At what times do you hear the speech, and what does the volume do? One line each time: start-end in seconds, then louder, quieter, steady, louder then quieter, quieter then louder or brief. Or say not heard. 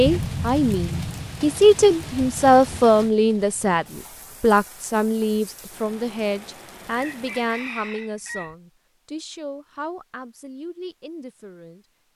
0.0-11.8 quieter.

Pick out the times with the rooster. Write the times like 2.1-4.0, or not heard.
6.8-8.6.